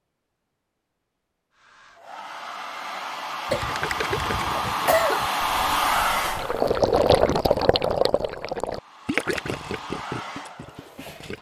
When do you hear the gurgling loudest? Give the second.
7 s.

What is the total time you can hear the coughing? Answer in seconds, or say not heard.
2 s.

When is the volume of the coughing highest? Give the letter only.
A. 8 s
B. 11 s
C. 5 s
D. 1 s
C.